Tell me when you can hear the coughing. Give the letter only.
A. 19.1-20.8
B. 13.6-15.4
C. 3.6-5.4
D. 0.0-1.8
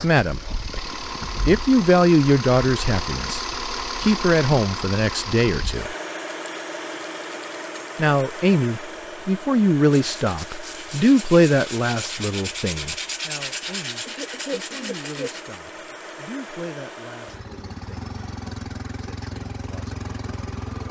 B.